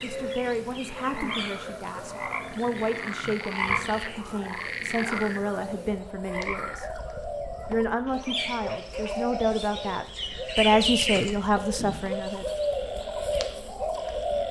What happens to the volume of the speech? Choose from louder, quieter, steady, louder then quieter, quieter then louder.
louder.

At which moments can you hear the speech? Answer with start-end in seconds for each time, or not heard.
0.0-6.9, 7.7-12.6.